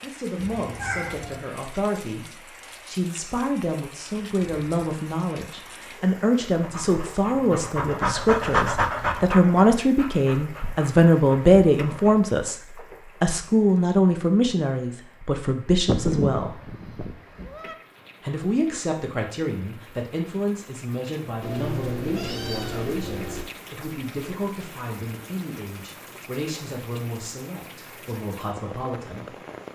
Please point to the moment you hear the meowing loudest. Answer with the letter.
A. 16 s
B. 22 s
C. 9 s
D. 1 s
A.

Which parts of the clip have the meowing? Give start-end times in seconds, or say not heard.
0.3-1.4, 15.8-17.8, 21.4-23.4.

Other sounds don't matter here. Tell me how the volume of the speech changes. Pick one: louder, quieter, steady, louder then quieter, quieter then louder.
louder then quieter.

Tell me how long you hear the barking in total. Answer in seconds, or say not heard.
6 s.